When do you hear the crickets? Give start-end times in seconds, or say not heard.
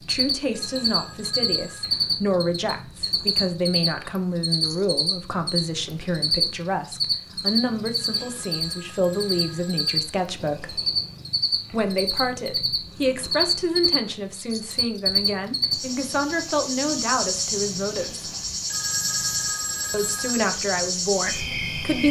0.0-22.0.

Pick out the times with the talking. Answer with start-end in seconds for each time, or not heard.
0.0-10.8, 11.7-18.3, 19.9-22.0.